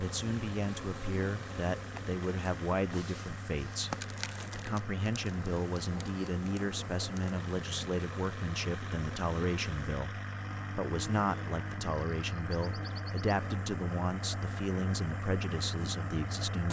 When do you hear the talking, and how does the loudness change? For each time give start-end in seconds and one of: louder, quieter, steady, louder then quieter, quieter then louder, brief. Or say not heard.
0.0-16.6 steady.